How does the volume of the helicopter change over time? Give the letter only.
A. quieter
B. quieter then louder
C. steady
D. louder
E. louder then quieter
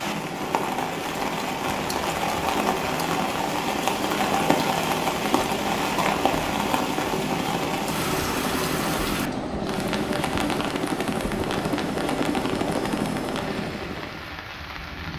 D.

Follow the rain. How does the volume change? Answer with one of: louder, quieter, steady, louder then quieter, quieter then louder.
quieter.